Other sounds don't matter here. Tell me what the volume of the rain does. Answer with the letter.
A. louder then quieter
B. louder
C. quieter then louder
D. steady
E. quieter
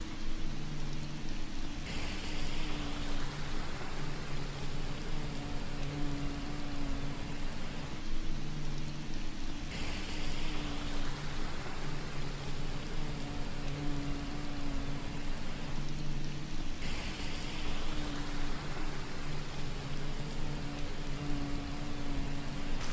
D.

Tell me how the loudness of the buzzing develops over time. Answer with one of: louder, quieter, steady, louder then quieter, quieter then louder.
steady.